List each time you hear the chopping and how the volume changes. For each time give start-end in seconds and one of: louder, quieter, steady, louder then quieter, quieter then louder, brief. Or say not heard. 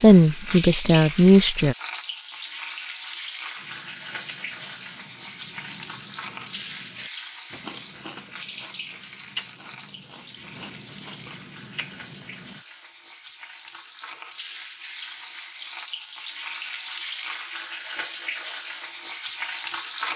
not heard.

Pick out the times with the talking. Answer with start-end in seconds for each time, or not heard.
0.0-1.8.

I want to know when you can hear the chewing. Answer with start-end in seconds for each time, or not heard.
3.5-12.6.